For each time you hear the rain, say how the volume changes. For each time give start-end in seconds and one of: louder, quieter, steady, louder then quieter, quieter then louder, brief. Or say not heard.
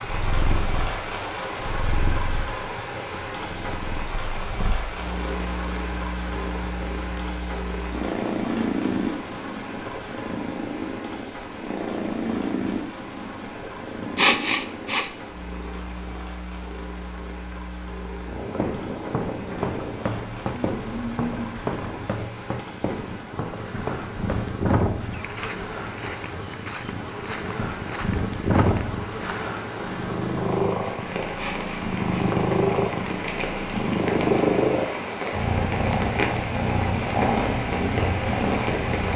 0.0-39.1 quieter then louder.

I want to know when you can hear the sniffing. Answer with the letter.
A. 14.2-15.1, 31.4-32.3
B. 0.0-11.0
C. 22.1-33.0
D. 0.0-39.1
A.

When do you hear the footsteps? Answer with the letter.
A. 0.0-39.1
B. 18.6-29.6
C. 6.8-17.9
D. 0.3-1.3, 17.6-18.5
B.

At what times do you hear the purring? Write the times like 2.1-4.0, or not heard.
0.0-39.1.